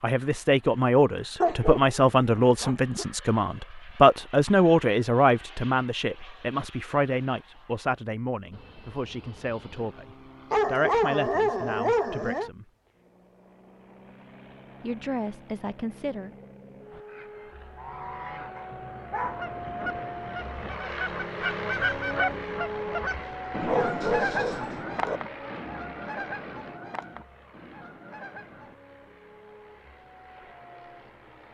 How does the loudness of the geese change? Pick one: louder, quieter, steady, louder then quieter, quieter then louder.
louder then quieter.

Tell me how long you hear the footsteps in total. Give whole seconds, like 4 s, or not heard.
not heard.